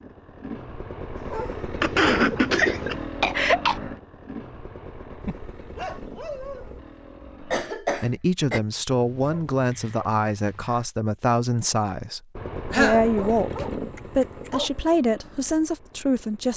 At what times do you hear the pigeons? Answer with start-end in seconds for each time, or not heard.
not heard.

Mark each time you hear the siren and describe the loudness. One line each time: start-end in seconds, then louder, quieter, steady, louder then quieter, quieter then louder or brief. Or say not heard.
not heard.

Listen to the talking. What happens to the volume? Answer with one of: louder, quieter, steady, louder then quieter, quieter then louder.
steady.